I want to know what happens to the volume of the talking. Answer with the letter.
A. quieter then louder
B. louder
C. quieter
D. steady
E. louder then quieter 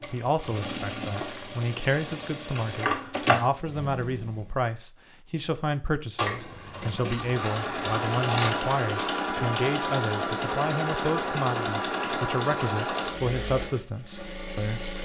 D.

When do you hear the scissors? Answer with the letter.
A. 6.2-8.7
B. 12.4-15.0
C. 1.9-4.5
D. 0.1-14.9
A.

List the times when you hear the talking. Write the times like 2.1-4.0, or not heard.
0.1-14.9.